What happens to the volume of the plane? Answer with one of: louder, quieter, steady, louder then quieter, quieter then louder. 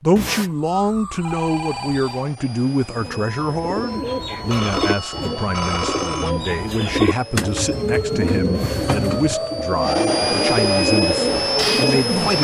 louder.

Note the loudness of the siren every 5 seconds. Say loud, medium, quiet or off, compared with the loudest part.
off, loud, loud.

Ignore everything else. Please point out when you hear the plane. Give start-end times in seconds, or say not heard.
1.5-12.3.